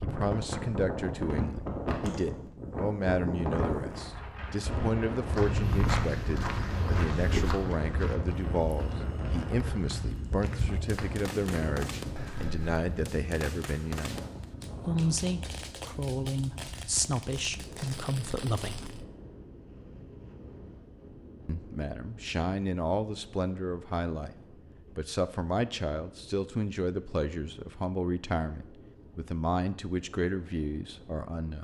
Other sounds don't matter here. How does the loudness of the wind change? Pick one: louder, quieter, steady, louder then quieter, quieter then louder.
quieter.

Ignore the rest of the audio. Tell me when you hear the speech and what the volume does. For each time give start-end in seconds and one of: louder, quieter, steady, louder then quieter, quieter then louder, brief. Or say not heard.
0.0-19.1 steady
21.4-24.4 brief
24.9-31.6 steady.